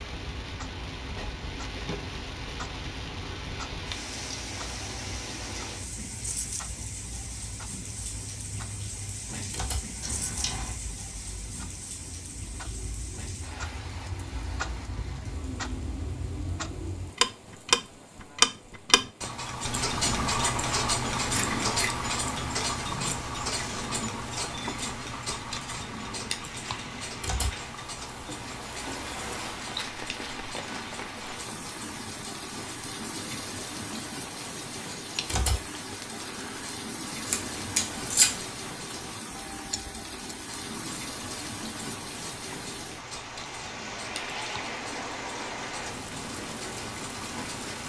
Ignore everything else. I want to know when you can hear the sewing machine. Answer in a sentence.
You can't hear the sewing machine here.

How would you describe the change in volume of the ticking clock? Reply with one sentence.
The volume of the ticking clock goes up, then down.